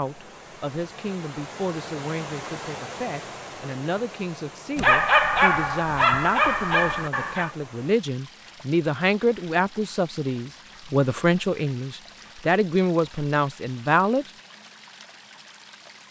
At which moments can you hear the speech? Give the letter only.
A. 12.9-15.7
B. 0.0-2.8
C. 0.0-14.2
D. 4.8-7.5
C.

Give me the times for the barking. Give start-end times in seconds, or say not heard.
4.8-7.5.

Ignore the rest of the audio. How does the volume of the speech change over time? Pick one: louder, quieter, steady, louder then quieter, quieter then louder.
louder.